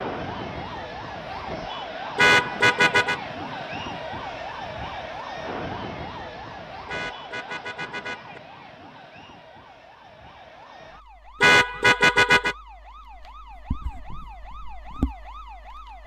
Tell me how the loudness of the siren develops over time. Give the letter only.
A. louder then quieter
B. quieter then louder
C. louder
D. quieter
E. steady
B.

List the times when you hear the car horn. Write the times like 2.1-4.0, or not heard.
2.1-3.2, 6.8-8.4, 11.4-12.6.